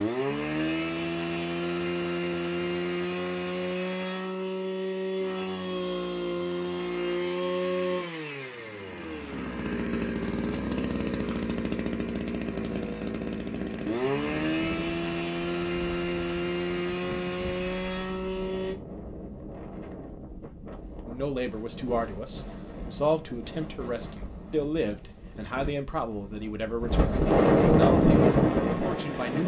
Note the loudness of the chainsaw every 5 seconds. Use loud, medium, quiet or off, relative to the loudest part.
loud, loud, loud, loud, off, quiet.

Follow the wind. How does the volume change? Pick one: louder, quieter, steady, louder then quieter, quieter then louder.
louder.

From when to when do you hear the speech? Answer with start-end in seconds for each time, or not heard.
21.1-29.4.